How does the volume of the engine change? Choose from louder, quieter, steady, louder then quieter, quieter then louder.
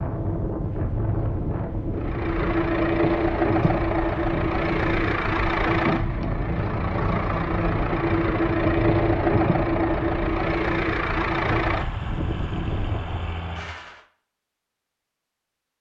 quieter.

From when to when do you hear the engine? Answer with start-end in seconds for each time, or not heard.
1.9-14.1.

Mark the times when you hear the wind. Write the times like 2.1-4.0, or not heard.
0.0-13.3.